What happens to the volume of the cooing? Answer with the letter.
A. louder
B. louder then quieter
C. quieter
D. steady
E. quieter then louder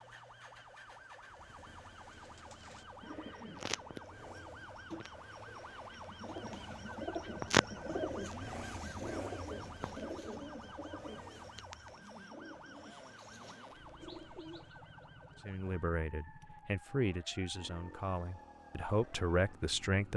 B.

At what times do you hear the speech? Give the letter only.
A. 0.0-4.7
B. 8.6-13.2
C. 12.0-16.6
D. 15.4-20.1
D.